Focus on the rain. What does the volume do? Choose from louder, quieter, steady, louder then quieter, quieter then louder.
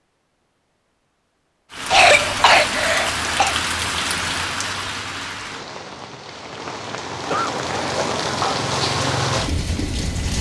quieter then louder.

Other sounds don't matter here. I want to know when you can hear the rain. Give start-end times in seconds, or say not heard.
1.7-10.3.